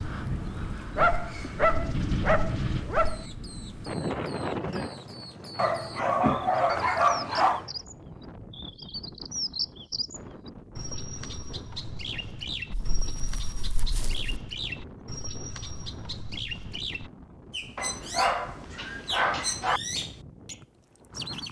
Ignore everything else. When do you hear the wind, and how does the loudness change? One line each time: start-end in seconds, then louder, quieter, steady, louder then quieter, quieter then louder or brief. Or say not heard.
0.0-21.4 quieter.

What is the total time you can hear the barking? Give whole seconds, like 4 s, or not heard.
8 s.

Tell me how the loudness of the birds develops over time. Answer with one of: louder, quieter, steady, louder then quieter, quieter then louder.
louder.